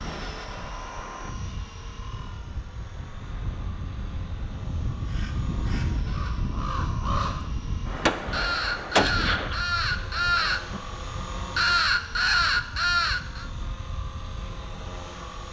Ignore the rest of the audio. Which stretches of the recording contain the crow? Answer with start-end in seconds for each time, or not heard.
5.0-7.5, 8.3-10.8, 11.6-13.4.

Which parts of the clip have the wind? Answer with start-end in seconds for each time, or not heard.
0.0-15.4.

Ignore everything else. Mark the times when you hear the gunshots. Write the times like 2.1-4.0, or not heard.
8.1-9.6.